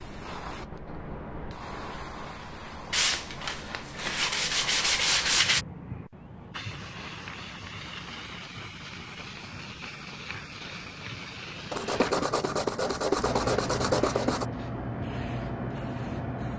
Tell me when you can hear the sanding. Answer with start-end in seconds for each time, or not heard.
2.9-5.7, 11.7-14.4.